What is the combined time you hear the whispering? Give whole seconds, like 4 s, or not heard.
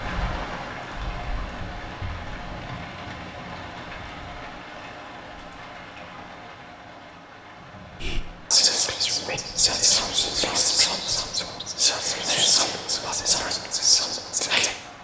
7 s.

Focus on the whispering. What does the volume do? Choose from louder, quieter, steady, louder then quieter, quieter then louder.
steady.